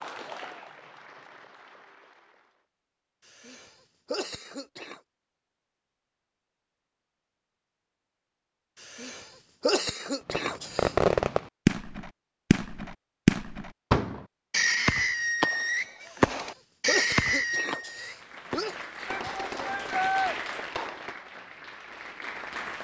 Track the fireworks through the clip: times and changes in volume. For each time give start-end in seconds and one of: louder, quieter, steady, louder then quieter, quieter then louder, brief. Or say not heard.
10.2-21.1 quieter.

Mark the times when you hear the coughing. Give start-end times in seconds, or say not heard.
3.2-5.0, 8.8-10.9, 16.0-18.8.